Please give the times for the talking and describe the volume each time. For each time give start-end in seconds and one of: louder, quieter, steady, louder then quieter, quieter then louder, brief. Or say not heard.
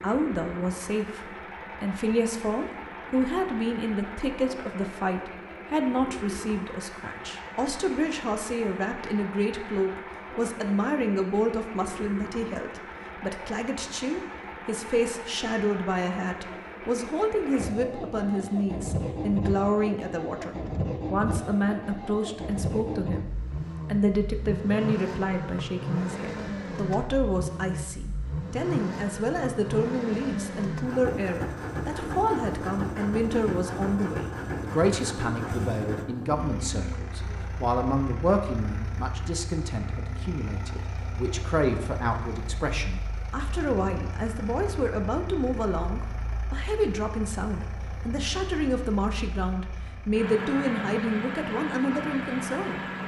0.0-52.8 steady.